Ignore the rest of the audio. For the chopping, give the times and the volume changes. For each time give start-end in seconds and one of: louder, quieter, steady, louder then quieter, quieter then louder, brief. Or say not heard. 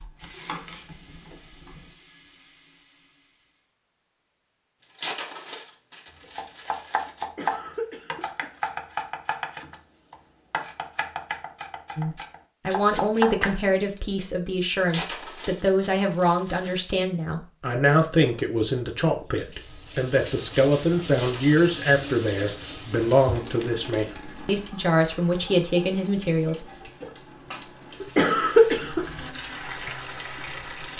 0.0-1.9 brief
6.2-14.1 quieter then louder.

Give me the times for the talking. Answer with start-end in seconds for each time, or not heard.
11.9-26.7.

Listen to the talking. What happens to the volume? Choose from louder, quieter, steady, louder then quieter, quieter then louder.
steady.